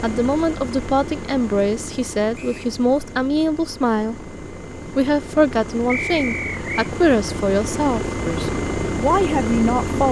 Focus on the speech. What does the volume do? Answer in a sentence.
The volume of the speech stays about the same.